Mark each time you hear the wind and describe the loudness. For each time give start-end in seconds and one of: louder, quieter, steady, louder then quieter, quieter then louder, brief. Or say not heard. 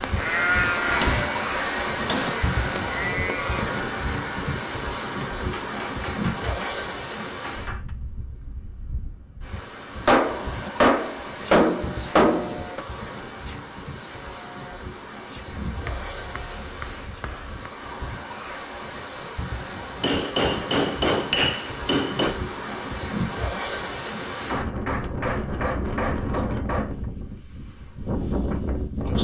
0.0-29.1 quieter then louder.